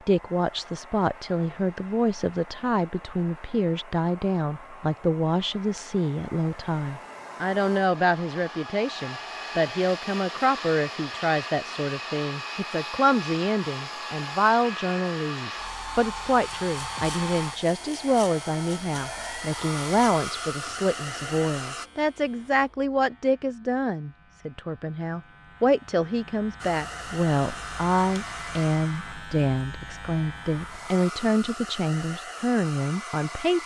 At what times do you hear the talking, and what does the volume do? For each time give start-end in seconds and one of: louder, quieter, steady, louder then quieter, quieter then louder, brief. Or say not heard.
0.1-33.6 steady.